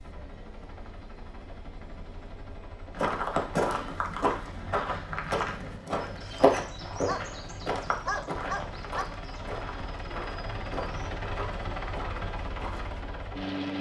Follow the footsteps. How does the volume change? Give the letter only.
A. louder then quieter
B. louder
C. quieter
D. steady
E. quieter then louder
C.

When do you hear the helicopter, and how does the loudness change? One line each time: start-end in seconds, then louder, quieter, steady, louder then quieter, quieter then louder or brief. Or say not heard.
0.0-13.7 louder.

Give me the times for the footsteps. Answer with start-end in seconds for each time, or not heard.
2.9-13.0.